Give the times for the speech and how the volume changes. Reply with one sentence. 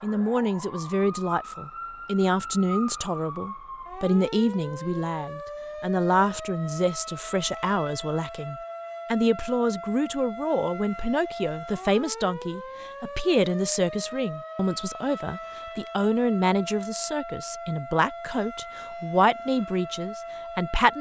You can hear the speech from 0.0 to 20.9 s, at a steady volume.